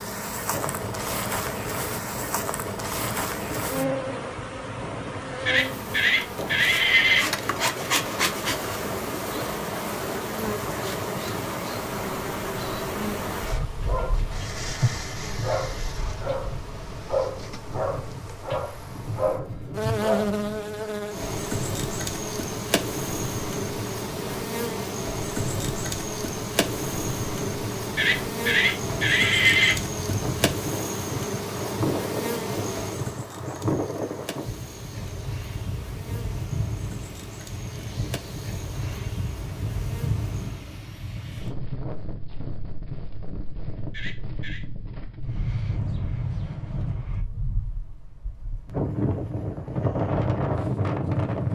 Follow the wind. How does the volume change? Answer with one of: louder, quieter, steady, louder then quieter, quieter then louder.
louder.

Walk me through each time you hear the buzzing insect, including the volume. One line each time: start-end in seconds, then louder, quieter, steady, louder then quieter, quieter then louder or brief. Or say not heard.
0.0-40.6 quieter.